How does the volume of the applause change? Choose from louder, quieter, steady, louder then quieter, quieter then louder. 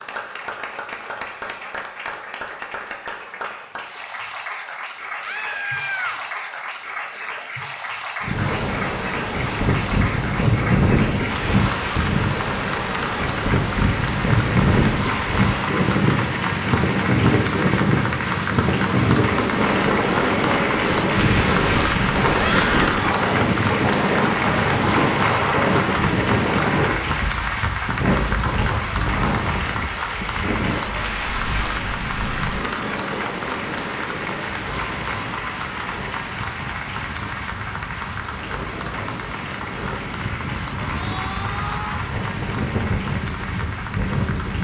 louder then quieter.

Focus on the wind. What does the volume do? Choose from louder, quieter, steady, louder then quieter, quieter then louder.
quieter.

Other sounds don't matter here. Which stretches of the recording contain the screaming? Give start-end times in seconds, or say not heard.
5.2-6.2, 22.3-23.0, 41.0-42.0.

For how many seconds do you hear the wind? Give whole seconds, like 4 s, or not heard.
36 s.